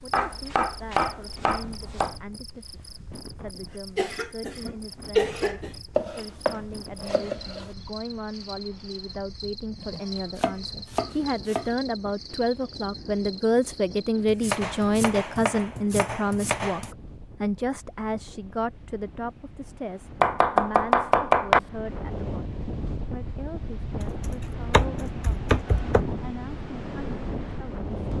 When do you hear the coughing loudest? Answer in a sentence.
The loudest moment of the coughing is at 5 seconds.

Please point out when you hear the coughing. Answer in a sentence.
You can hear the coughing from 3.5 to 5.8 s.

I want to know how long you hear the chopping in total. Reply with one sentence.
You can hear the chopping for 12 seconds altogether.